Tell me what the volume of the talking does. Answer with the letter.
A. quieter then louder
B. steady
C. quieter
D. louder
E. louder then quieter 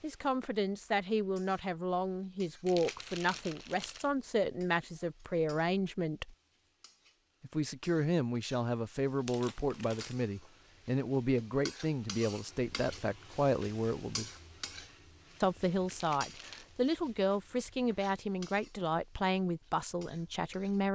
B.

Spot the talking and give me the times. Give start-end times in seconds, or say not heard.
0.0-6.3, 7.4-14.3, 15.4-20.9.